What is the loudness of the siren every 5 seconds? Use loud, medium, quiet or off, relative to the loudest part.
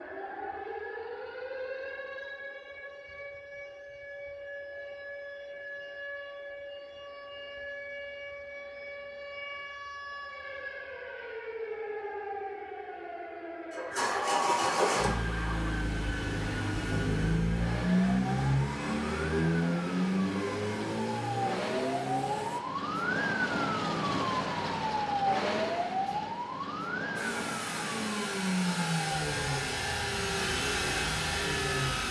medium, medium, medium, medium, loud, loud, medium.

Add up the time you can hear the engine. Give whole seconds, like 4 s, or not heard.
14 s.